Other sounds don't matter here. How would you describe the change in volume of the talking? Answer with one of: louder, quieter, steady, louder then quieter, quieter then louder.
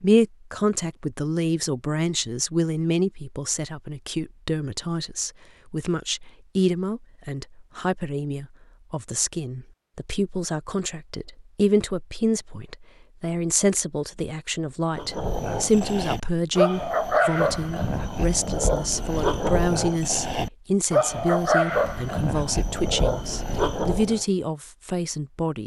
steady.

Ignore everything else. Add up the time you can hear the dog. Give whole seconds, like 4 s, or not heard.
9 s.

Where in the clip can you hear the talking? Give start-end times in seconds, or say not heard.
0.0-25.6.